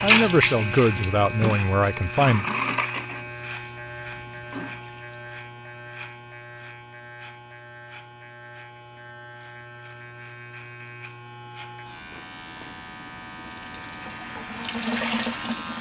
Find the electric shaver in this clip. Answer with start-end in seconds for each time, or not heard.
0.0-15.7.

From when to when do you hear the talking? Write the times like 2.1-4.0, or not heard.
0.0-2.5.